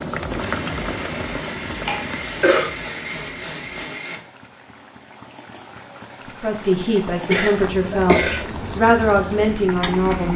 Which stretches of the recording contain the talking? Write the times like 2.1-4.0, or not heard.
6.4-10.3.